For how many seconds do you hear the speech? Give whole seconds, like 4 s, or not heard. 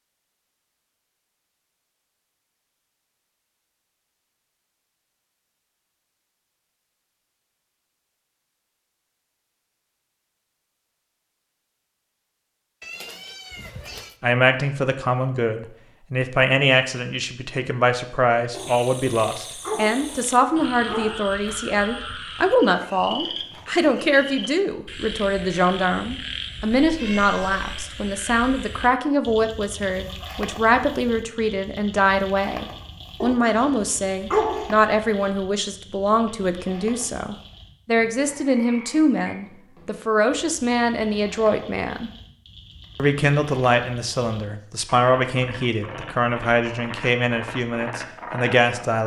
34 s.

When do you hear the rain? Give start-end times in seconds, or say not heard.
not heard.